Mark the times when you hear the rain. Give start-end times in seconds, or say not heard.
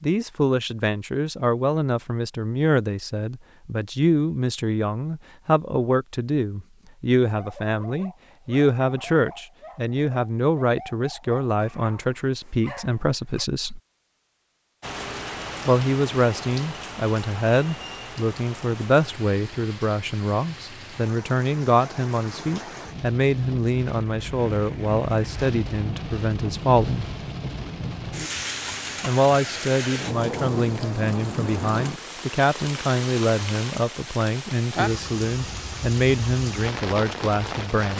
14.8-37.9.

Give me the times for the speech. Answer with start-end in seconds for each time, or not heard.
0.0-13.8, 15.7-27.1, 29.0-37.9.